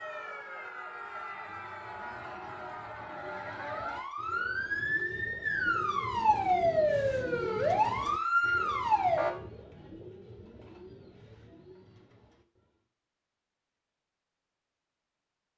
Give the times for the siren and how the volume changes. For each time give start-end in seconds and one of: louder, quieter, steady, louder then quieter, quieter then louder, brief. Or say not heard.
0.0-9.3 louder.